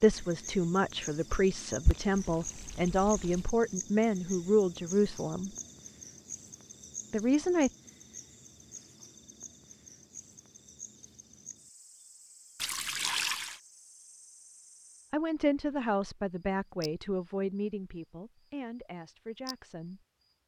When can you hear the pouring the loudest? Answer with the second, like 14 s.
13 s.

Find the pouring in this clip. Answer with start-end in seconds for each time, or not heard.
1.9-3.5, 12.6-13.6.